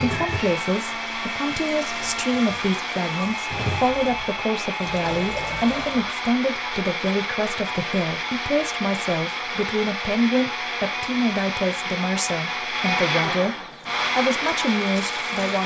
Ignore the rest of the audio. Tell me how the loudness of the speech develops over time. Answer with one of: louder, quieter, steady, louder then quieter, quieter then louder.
steady.